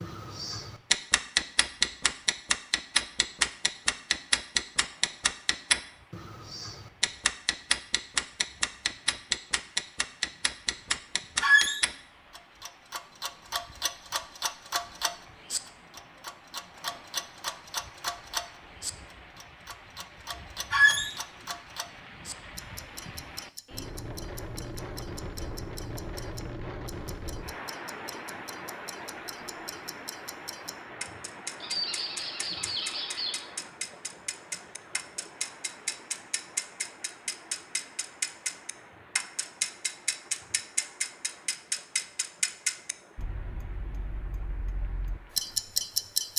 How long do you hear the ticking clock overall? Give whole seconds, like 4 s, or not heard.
46 s.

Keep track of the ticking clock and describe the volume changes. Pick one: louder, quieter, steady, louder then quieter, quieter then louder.
quieter then louder.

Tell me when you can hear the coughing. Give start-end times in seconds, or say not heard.
not heard.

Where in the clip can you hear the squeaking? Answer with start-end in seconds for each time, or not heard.
11.4-11.8, 20.7-21.1, 31.6-33.5.